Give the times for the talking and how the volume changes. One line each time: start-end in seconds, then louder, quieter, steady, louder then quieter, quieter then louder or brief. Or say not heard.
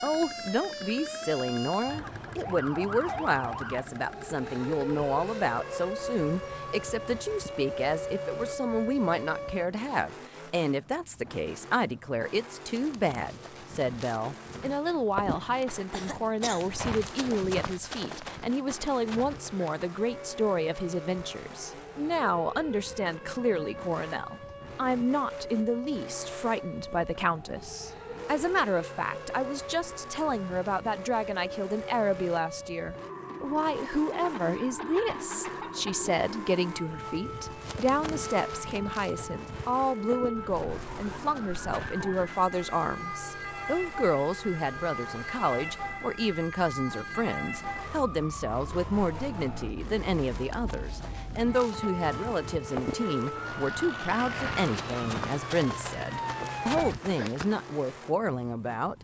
0.0-59.0 steady.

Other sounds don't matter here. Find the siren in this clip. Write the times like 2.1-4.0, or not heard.
0.0-9.7, 19.9-57.0.